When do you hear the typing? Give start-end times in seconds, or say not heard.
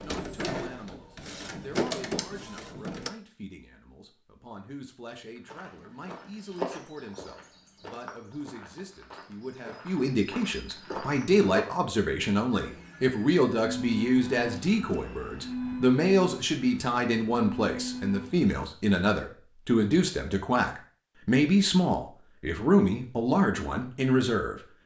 not heard.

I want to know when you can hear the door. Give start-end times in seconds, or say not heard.
not heard.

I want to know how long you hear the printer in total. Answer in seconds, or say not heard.
9 s.